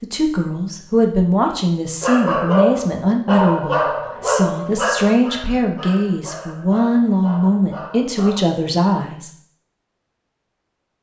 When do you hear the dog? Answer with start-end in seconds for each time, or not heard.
2.0-8.4.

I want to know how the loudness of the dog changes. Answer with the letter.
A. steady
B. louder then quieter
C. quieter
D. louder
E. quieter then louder
C.